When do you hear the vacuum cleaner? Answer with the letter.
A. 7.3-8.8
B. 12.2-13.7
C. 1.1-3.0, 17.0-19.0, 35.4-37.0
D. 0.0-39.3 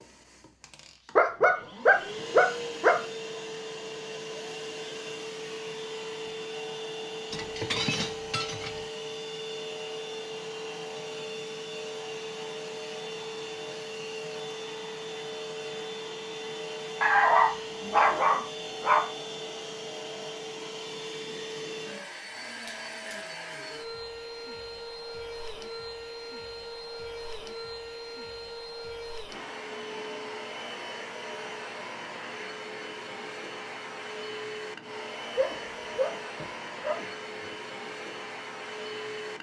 D.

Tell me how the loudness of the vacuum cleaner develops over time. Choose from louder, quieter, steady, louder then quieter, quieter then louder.
steady.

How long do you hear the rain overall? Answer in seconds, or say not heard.
not heard.